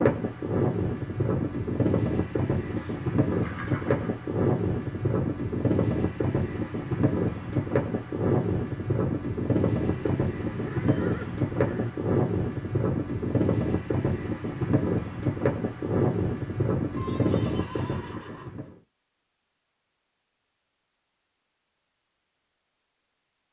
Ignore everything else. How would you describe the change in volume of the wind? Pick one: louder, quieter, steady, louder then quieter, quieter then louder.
steady.